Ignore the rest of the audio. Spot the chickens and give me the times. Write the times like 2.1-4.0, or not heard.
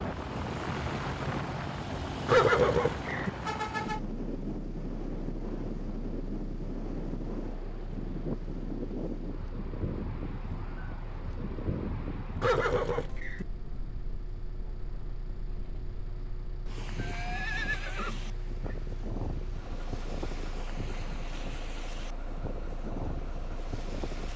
not heard.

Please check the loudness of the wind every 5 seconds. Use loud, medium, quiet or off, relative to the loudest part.
loud, loud, medium, medium, medium.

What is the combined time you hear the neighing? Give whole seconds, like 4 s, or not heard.
4 s.